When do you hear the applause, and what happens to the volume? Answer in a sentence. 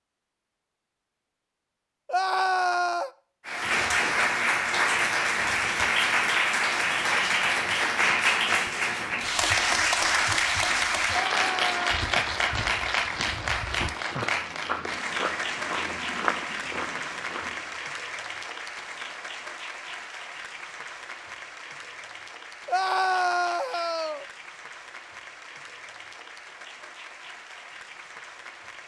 The applause can be heard from 3.5 to 28.8 s, getting quieter.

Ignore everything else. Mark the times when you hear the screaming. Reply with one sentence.
You can hear the screaming from 2.0 to 3.1 s, from 11.1 to 12.0 s and from 22.6 to 24.2 s.